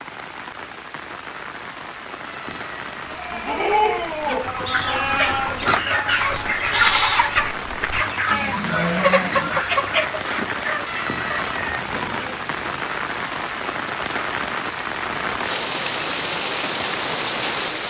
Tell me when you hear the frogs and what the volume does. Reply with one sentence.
You can't hear the frogs here.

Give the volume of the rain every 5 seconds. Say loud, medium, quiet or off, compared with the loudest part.
medium, medium, loud, loud.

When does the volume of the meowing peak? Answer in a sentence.
The loudest moment of the meowing is at 11 seconds.